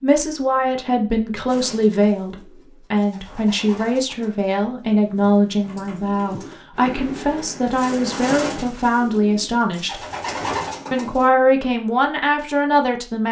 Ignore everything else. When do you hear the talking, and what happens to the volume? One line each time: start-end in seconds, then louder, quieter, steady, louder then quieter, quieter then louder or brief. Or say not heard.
0.0-10.1 steady
10.9-13.2 brief.